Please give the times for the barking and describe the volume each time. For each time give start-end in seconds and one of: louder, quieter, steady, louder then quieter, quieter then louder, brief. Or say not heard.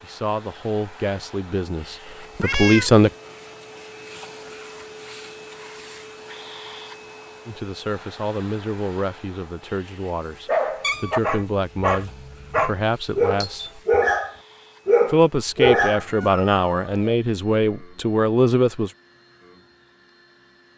10.4-16.3 louder.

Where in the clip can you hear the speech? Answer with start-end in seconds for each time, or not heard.
0.0-3.1, 7.5-13.8, 15.1-18.9.